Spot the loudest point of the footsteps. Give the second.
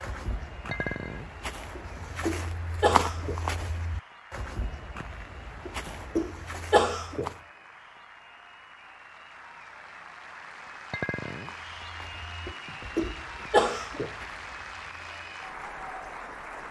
3 s.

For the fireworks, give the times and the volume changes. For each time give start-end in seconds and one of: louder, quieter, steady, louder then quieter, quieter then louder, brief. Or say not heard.
not heard.